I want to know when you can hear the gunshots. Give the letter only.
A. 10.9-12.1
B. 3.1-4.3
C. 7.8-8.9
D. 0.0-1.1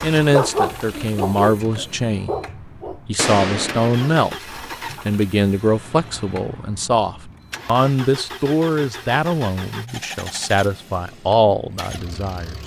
B.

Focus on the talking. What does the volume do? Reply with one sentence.
The loudness of the talking stays about the same.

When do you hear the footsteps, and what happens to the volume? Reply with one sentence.
You can't hear the footsteps here.